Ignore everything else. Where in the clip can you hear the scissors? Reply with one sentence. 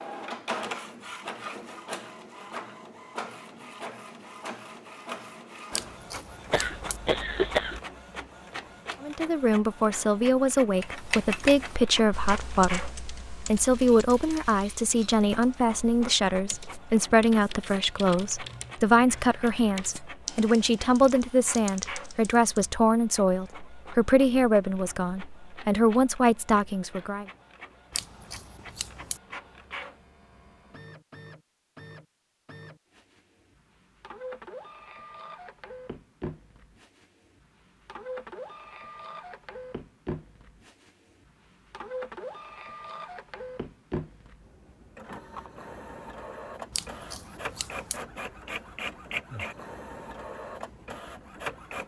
You can hear the scissors from 5.7 to 7.0 s, from 27.9 to 29.2 s and from 46.7 to 48.0 s.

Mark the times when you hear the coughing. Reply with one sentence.
You can hear the coughing from 6.5 to 7.8 s.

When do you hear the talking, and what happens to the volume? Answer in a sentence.
The talking can be heard from 9.0 to 27.2 s, at a steady volume.